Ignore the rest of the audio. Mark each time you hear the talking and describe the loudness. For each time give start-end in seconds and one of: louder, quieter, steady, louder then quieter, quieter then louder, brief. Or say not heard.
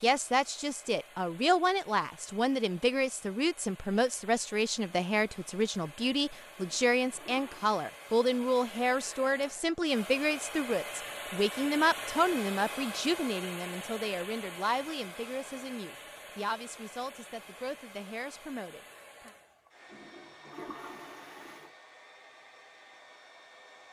0.0-19.3 quieter.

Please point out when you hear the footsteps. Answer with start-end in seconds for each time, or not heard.
not heard.